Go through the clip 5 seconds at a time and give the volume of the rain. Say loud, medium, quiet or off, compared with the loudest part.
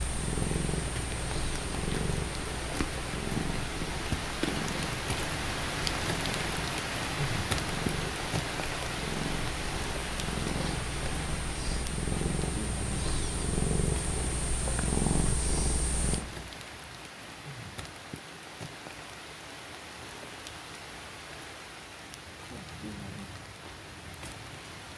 loud, loud, medium, medium, medium.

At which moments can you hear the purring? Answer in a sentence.
The purring can be heard from 0.0 to 16.2 s.